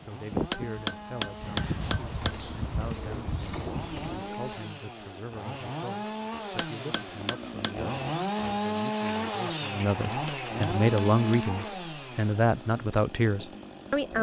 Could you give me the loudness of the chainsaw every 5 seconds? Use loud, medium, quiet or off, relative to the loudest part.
medium, loud, loud.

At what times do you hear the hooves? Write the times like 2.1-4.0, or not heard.
0.0-4.3.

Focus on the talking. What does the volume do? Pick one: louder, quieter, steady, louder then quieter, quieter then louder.
louder.